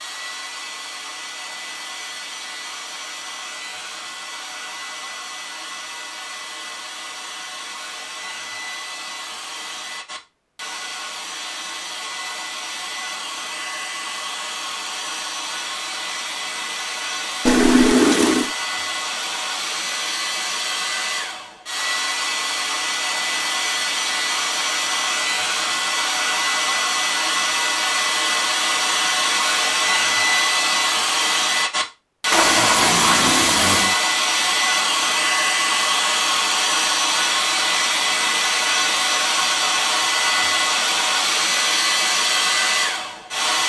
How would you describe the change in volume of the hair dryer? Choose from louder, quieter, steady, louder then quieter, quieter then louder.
louder.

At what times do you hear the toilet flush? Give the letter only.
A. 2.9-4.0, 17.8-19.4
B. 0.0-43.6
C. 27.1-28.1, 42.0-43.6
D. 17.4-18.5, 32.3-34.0
D.